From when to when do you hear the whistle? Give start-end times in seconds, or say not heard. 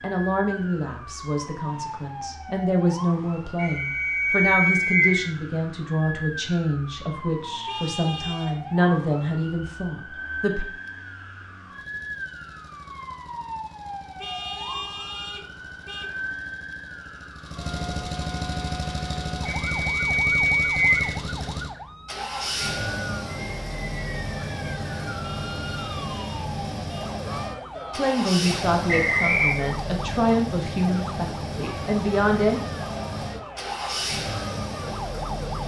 3.5-5.2, 19.4-21.1, 28.9-29.6.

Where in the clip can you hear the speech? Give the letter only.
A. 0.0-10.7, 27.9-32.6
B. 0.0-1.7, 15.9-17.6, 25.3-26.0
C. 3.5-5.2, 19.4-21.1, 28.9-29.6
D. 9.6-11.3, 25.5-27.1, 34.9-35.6
A.